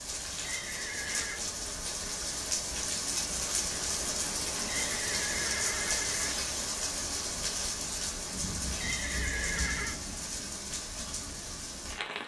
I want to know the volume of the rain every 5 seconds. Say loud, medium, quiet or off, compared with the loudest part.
loud, loud, medium.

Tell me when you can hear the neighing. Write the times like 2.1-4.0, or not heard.
0.3-1.4, 4.6-6.3, 8.7-10.0.